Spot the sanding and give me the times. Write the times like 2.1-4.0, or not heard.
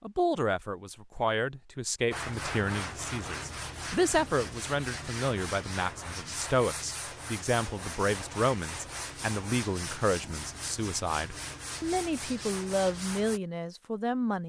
2.1-13.4.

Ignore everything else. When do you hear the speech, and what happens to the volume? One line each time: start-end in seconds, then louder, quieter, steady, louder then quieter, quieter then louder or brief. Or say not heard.
0.0-14.4 steady.